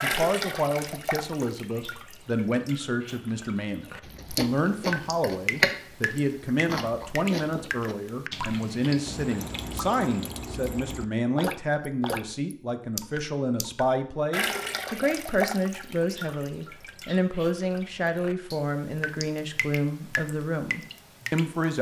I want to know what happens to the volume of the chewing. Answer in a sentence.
The loudness of the chewing goes up, then down.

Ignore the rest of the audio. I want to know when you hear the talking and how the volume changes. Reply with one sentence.
You can hear the talking from 0.0 to 21.7 s, at a steady volume.